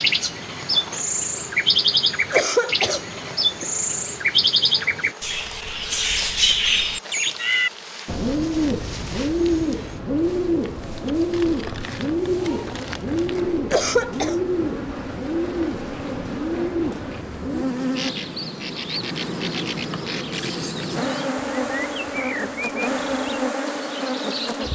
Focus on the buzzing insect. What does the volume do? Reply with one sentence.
The volume of the buzzing insect goes up.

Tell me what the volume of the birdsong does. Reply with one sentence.
The loudness of the birdsong goes down.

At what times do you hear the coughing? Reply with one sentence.
The coughing can be heard from 2.3 to 3.6 s and from 13.7 to 14.4 s.